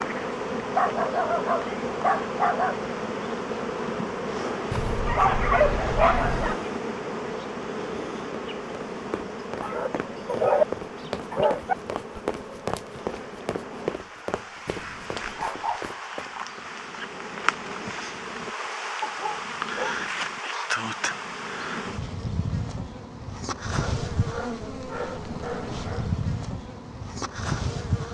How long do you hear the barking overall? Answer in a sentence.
The barking can be heard for 11 seconds in total.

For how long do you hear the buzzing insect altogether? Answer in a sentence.
The buzzing insect can be heard for 28 seconds in total.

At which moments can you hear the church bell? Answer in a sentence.
You can't hear the church bell here.